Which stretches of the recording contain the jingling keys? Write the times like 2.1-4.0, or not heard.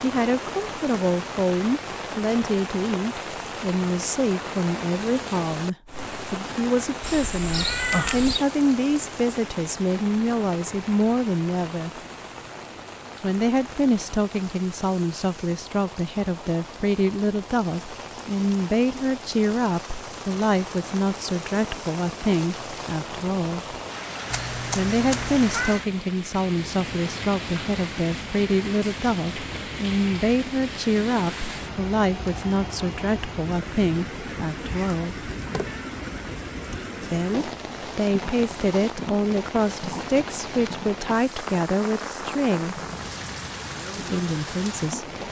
not heard.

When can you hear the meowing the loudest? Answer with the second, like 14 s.
8 s.